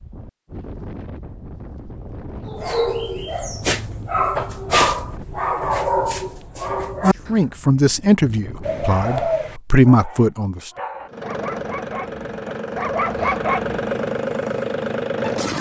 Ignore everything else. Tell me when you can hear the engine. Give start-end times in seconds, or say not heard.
11.1-15.5.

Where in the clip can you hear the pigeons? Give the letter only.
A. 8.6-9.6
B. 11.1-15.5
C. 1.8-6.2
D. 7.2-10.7
A.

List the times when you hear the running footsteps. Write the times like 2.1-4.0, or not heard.
not heard.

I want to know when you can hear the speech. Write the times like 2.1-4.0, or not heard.
7.2-10.7.